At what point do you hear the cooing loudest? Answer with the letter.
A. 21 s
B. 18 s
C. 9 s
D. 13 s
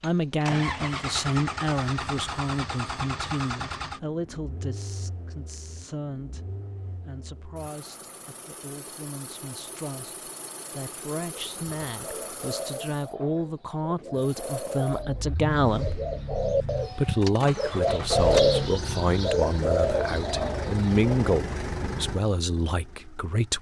B.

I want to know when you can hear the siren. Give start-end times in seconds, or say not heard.
not heard.